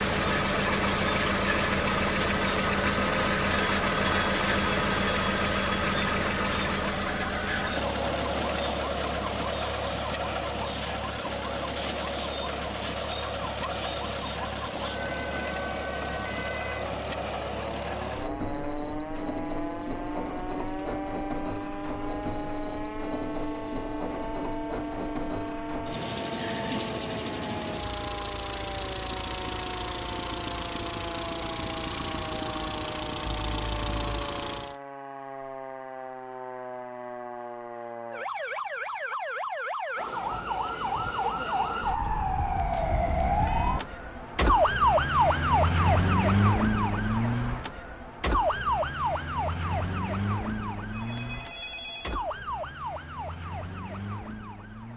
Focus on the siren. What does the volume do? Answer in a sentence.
The loudness of the siren goes up.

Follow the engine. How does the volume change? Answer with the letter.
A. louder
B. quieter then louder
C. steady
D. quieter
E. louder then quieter
D.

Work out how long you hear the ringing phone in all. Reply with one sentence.
The ringing phone can be heard for 5 seconds in total.